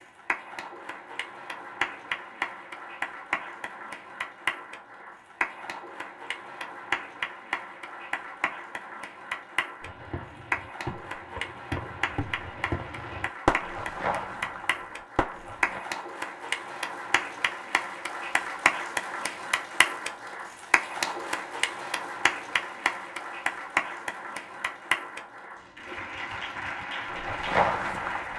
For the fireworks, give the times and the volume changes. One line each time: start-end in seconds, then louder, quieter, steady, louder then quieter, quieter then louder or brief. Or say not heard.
9.8-15.8 louder then quieter
25.9-28.3 brief.